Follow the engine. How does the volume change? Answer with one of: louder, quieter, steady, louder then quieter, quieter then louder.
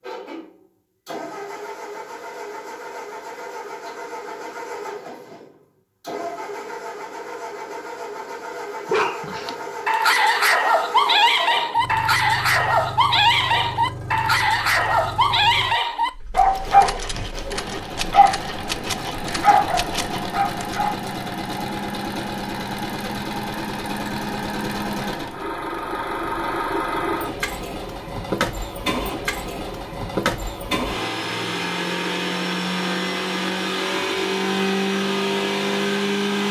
louder.